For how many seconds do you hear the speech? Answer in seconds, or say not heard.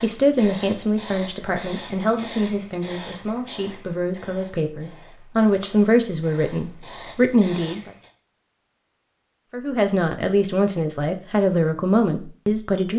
11 s.